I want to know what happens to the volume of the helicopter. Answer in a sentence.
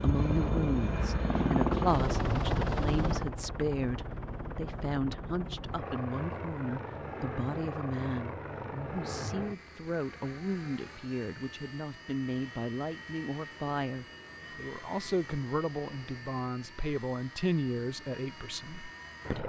The loudness of the helicopter goes down.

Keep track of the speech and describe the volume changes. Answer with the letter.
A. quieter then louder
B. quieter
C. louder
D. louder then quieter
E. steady
E.